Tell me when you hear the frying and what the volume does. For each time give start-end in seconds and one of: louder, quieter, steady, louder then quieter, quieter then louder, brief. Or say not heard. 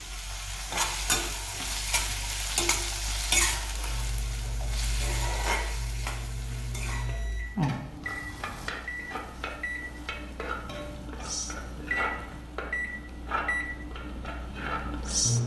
0.0-15.3 quieter.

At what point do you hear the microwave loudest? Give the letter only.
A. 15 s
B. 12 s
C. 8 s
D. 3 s
A.